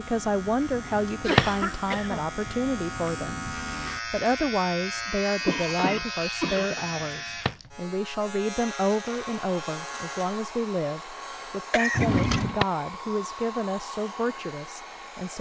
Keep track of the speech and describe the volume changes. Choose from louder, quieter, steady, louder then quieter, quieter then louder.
steady.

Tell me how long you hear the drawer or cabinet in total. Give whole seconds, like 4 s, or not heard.
2 s.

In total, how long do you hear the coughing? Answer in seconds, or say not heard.
3 s.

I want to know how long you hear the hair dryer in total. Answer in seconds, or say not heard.
6 s.